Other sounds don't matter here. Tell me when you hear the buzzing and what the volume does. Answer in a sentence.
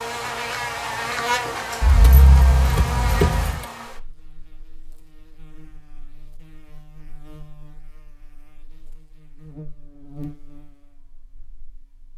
You can hear the buzzing from 0.0 to 12.1 s, getting quieter then louder.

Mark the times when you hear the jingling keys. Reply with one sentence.
The jingling keys can be heard from 1.8 to 3.6 s.